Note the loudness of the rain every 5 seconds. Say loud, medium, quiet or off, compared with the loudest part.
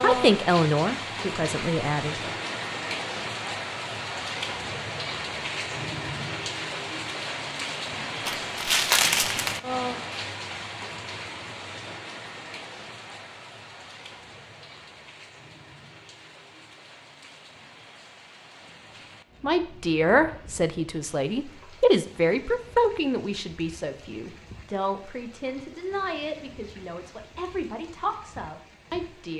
loud, loud, medium, quiet, quiet, quiet.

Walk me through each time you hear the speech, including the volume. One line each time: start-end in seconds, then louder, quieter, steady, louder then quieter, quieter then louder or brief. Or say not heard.
0.0-2.1 brief
19.4-29.3 quieter.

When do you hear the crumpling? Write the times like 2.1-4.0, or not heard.
8.2-9.6.